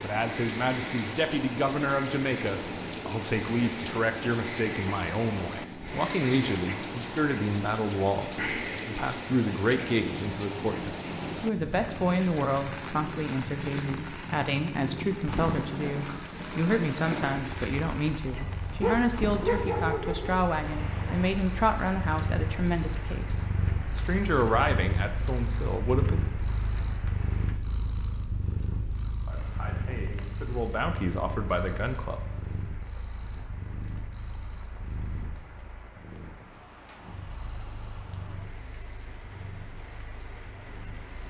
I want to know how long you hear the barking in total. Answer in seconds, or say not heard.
2 s.